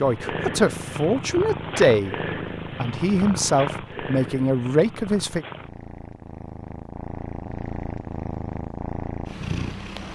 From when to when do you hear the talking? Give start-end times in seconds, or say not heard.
0.0-2.1, 2.8-5.5.